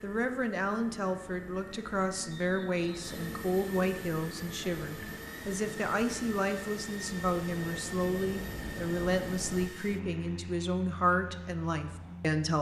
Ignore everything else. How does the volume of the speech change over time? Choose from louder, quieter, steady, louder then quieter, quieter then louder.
steady.